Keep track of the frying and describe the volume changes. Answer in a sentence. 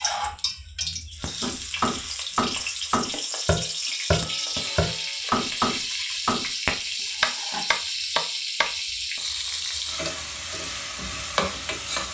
The volume of the frying stays about the same.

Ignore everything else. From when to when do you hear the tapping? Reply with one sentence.
The tapping can be heard from 1.4 to 8.7 s.